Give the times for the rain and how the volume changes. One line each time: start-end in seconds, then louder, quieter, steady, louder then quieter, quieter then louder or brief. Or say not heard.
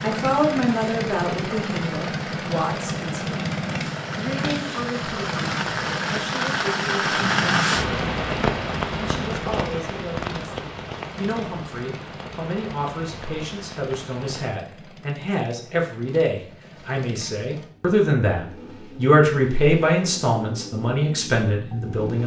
0.0-14.6 louder then quieter.